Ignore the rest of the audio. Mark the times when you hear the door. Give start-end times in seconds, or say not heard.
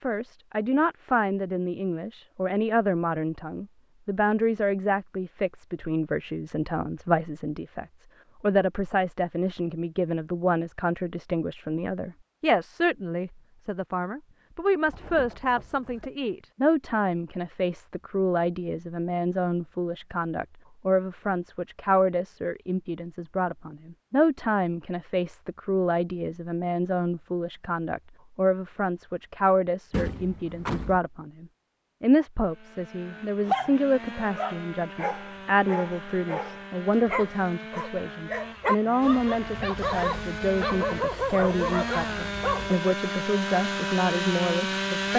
14.8-16.1, 29.9-31.0.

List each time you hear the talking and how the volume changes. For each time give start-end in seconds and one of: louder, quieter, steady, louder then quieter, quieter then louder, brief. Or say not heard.
0.0-45.1 steady.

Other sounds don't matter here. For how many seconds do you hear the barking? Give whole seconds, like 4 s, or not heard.
9 s.